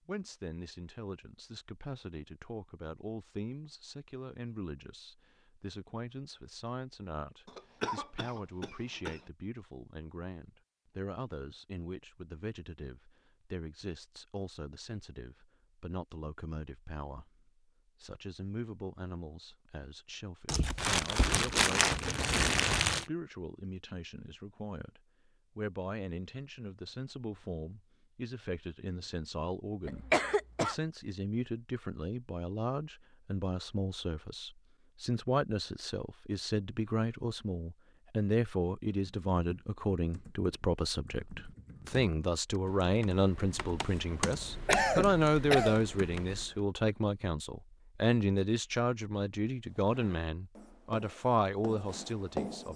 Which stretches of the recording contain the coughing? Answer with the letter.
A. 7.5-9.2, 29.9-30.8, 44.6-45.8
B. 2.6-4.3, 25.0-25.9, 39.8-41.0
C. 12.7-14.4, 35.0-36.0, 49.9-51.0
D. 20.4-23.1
A.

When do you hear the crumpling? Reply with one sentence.
You can hear the crumpling from 20.4 to 23.1 s.